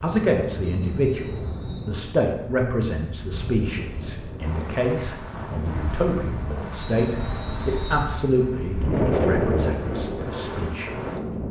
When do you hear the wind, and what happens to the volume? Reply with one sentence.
The wind can be heard from 0.2 to 11.4 s, getting louder.